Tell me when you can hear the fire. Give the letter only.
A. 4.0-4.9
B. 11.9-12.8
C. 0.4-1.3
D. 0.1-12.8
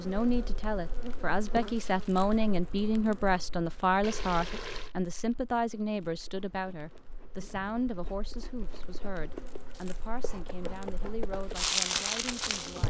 D.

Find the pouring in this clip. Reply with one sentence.
You can hear the pouring from 4.0 to 4.9 s.